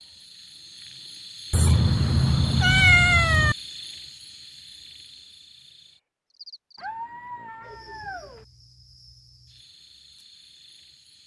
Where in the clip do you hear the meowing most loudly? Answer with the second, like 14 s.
3 s.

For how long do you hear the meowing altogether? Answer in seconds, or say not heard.
4 s.